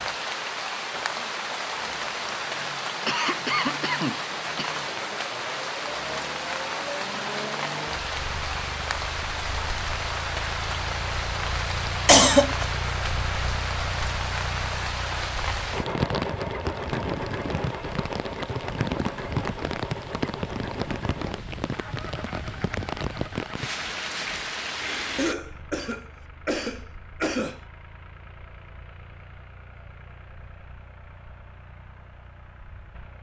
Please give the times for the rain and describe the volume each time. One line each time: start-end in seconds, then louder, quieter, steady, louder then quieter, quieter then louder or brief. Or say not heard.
0.0-25.4 steady.